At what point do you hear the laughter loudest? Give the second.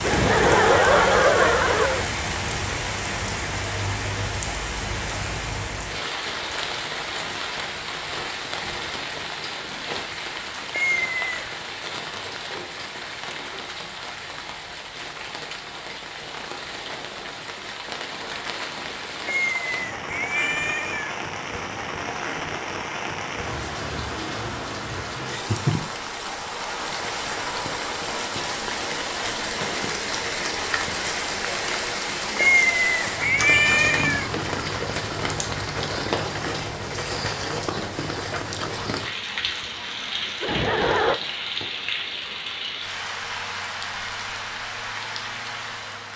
1 s.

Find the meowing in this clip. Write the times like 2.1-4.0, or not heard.
10.7-11.3, 19.2-21.1, 32.4-34.3.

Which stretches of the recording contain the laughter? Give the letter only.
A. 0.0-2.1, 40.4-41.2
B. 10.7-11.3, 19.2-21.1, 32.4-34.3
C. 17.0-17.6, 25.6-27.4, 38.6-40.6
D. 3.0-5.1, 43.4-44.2
A.